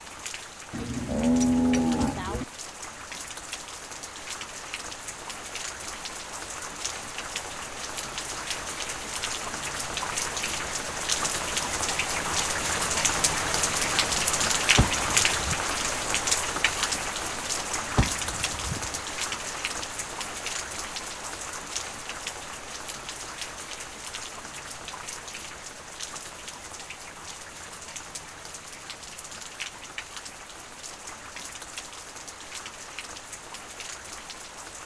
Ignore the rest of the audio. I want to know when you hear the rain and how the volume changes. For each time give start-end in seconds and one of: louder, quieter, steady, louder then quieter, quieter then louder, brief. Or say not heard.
0.0-34.8 louder then quieter.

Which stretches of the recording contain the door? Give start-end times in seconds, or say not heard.
14.8-15.6, 17.9-19.0.